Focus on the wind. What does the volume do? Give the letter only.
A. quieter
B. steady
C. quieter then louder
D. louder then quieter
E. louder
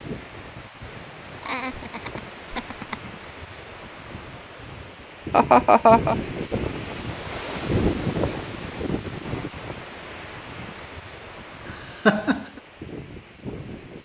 D.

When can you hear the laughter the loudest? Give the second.
6 s.